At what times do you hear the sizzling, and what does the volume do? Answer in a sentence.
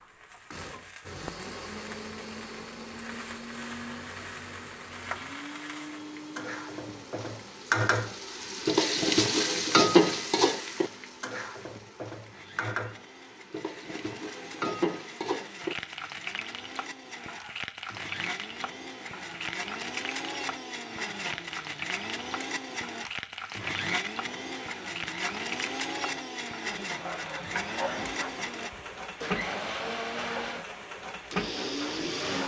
You can hear the sizzling from 0.0 to 32.4 s, getting louder then quieter.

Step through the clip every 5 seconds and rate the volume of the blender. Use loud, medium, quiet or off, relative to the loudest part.
medium, medium, quiet, medium, loud, loud, loud.